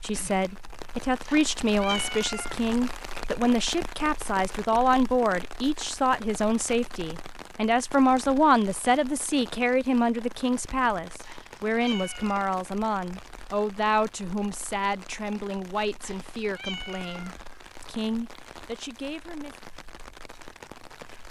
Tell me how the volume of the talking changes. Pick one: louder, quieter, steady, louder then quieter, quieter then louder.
quieter.